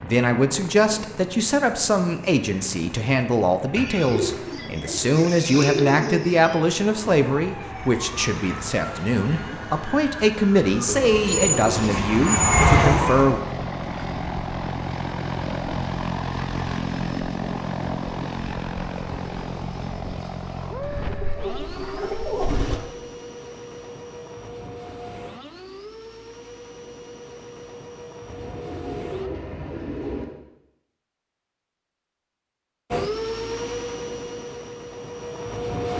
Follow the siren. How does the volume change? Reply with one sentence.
The loudness of the siren goes up.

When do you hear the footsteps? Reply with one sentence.
The footsteps can't be heard in this clip.